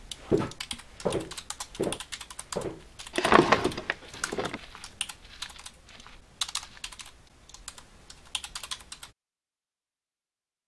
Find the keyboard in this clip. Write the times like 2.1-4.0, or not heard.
0.0-9.1.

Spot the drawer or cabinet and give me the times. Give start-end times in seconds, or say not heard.
3.1-4.6.